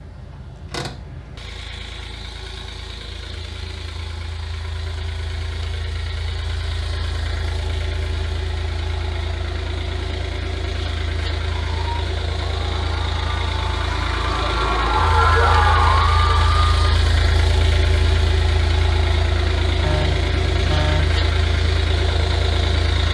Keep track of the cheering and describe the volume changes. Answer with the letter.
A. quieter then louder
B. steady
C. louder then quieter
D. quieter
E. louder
E.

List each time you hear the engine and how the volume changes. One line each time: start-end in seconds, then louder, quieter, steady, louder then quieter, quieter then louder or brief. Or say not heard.
0.0-23.0 louder.